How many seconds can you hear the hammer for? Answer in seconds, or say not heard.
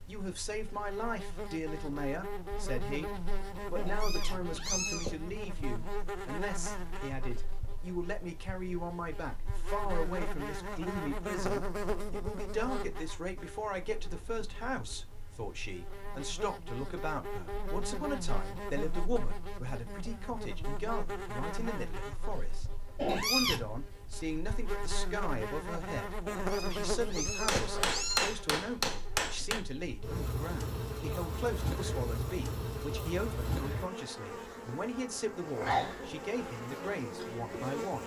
2 s.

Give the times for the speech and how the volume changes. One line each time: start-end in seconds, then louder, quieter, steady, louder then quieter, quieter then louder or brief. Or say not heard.
0.1-38.0 steady.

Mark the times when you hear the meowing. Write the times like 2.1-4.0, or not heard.
3.8-5.2, 22.9-23.8, 26.2-28.4.